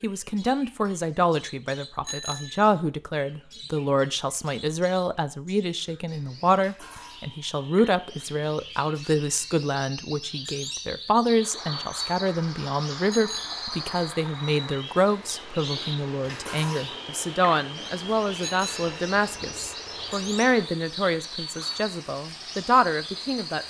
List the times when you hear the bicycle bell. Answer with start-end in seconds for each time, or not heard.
2.0-2.6, 13.1-13.7, 18.4-19.0.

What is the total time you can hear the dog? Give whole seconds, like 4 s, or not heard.
not heard.